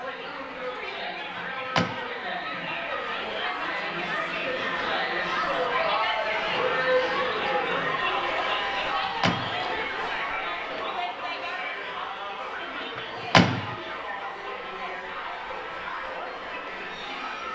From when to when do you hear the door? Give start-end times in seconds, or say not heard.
1.4-1.9, 8.8-9.6, 12.9-13.7.